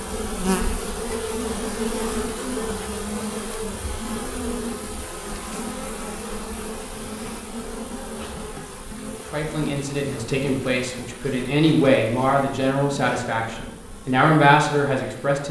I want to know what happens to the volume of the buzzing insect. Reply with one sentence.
The loudness of the buzzing insect goes down.